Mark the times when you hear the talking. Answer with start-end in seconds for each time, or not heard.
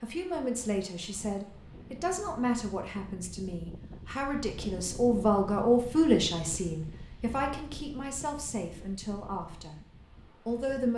0.0-9.8, 10.4-10.9.